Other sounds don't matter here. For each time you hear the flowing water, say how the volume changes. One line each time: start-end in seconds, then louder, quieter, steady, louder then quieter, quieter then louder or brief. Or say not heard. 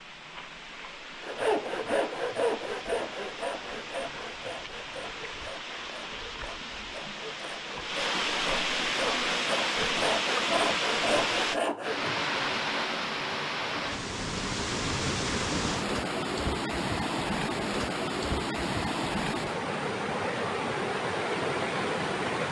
0.0-22.4 louder.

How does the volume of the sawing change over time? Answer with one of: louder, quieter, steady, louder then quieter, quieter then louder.
quieter then louder.